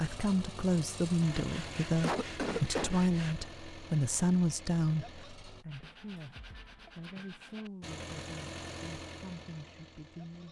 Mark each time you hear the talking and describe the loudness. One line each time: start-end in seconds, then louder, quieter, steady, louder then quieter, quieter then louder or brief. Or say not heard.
0.0-10.4 quieter.